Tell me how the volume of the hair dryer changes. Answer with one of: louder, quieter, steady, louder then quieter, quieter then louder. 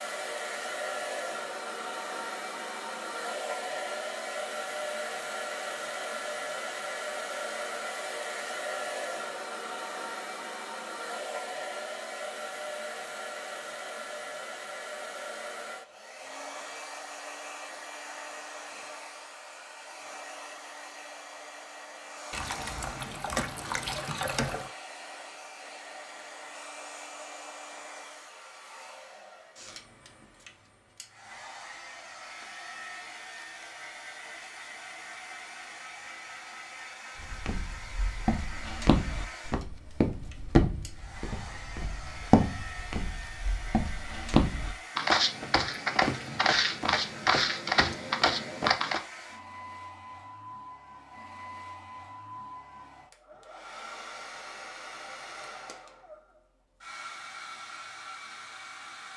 quieter.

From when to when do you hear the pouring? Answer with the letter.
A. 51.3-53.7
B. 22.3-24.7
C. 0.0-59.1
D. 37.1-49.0
B.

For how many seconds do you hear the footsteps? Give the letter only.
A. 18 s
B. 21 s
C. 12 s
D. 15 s
C.